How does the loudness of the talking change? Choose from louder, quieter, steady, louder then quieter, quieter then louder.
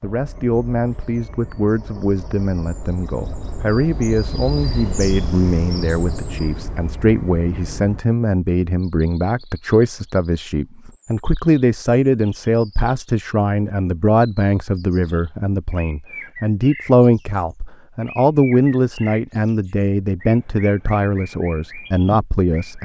steady.